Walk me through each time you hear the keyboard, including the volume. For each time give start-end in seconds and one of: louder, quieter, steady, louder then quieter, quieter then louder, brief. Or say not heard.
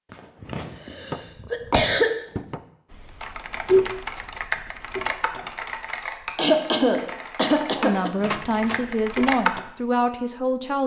2.9-9.6 quieter.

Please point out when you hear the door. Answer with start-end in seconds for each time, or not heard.
1.1-2.6, 8.2-8.9.